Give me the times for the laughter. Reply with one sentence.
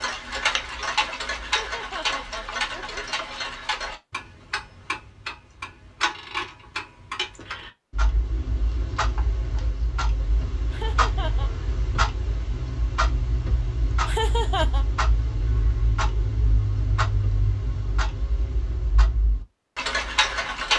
You can hear the laughter from 1.6 to 3.0 s, from 10.7 to 11.5 s and from 14.1 to 14.8 s.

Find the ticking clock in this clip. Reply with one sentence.
You can hear the ticking clock from 0.0 to 20.7 s.